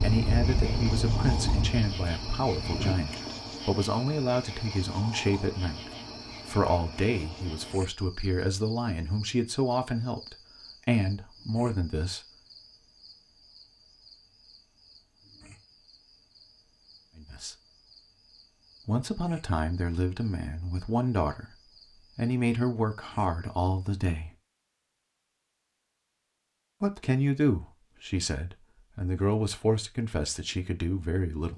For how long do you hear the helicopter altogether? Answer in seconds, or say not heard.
3 s.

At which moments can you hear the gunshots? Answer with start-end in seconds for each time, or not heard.
not heard.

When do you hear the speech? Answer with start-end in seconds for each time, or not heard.
0.0-12.2, 17.1-17.6, 18.9-24.3, 26.8-31.5.